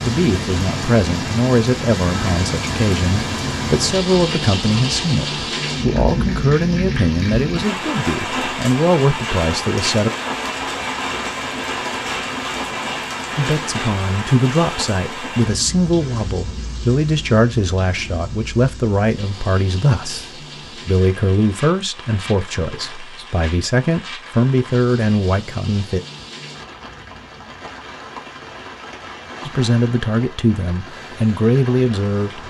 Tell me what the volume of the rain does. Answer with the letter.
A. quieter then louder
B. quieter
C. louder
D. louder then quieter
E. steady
B.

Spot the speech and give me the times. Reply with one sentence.
You can hear the speech from 0.0 to 10.1 s, from 13.3 to 26.0 s and from 29.4 to 32.4 s.